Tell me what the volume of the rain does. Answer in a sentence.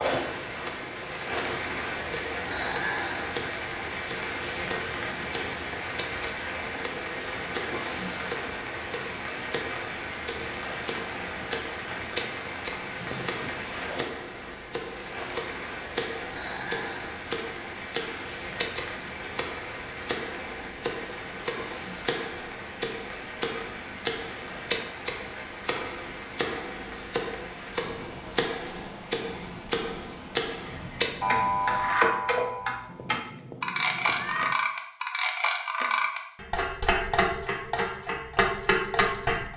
The loudness of the rain goes down.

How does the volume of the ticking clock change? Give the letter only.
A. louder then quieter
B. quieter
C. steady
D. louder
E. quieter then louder
D.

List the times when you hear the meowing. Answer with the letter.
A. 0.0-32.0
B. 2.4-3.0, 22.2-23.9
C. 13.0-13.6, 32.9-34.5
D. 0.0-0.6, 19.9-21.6
C.